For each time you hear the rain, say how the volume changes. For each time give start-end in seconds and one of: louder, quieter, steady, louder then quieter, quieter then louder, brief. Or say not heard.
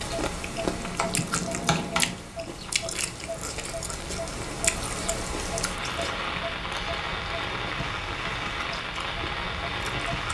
0.0-10.2 louder.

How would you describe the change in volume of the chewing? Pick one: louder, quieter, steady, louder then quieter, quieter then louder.
quieter.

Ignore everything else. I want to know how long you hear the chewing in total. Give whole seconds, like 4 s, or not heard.
10 s.